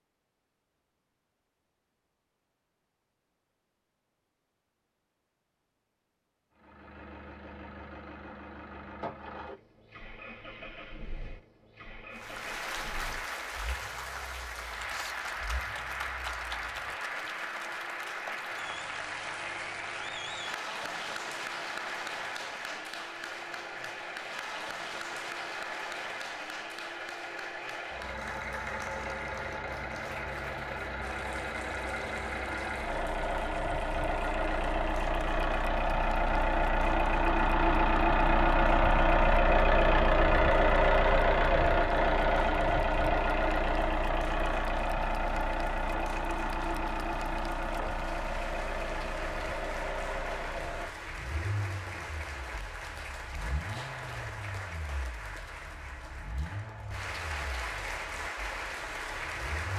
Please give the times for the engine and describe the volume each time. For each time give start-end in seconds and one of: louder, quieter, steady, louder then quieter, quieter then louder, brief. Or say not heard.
6.5-59.7 louder then quieter.